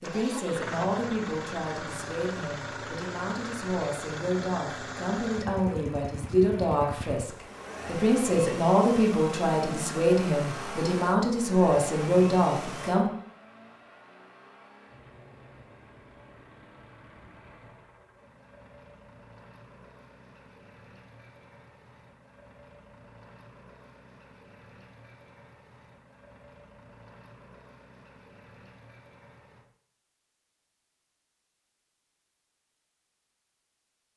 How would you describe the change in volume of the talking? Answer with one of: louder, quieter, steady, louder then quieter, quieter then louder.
louder.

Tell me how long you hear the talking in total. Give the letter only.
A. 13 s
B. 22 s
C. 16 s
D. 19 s
A.